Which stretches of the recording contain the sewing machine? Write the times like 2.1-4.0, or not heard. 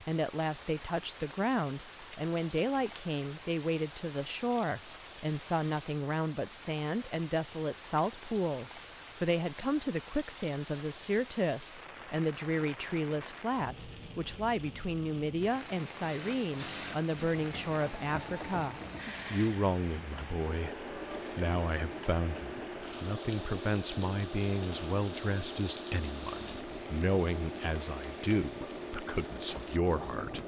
15.9-30.4.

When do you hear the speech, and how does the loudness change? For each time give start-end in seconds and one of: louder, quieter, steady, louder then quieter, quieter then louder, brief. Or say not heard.
0.1-30.4 steady.